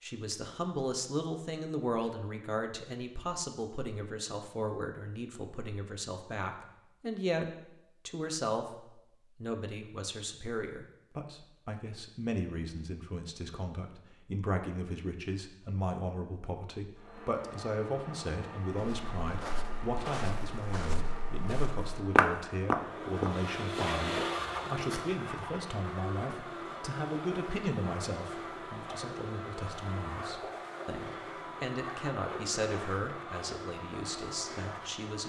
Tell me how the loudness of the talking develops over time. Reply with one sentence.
The volume of the talking stays about the same.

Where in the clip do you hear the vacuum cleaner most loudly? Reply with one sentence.
The volume of the vacuum cleaner peaks at 24 seconds.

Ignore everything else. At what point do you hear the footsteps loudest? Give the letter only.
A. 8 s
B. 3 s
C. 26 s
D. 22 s
D.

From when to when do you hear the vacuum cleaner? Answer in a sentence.
The vacuum cleaner can be heard from 16.9 to 35.2 s.